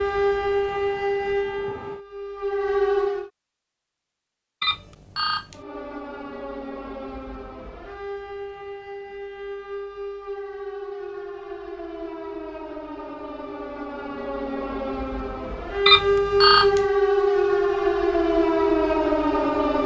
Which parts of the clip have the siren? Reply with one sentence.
You can hear the siren from 0.0 to 3.3 s and from 5.5 to 19.8 s.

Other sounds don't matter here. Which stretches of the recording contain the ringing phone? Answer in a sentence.
You can hear the ringing phone from 4.6 to 5.6 s and from 15.8 to 16.9 s.